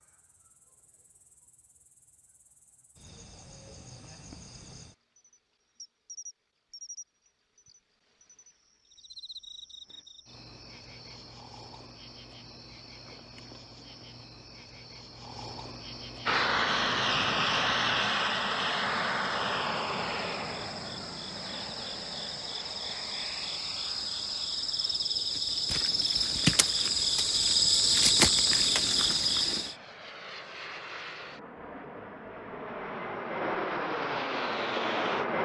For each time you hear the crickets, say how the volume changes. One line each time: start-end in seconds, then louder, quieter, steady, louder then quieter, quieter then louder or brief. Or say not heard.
0.0-29.8 louder.